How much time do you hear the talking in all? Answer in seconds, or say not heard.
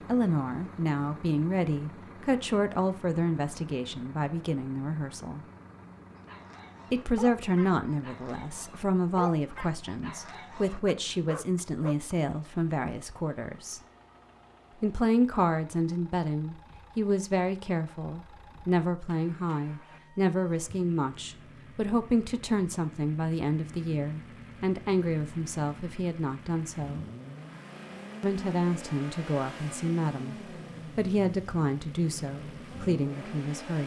30 s.